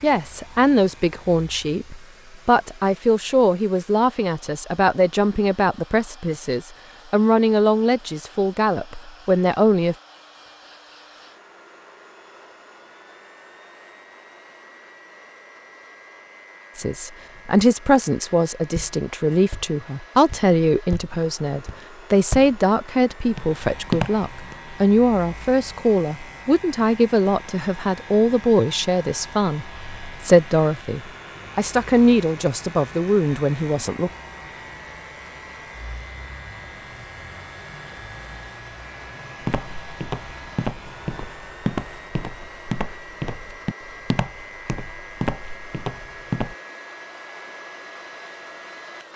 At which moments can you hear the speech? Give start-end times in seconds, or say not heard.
0.0-9.9, 16.8-34.1.